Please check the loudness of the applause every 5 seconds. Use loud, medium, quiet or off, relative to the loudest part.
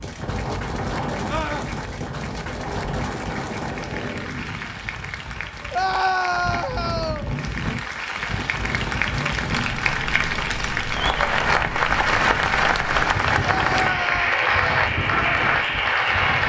quiet, medium, loud, loud.